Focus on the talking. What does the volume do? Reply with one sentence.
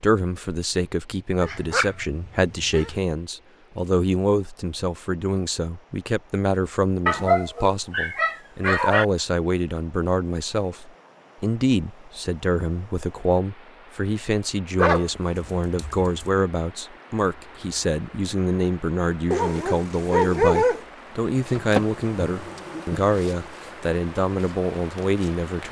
The loudness of the talking stays about the same.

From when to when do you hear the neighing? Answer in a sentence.
You can't hear the neighing here.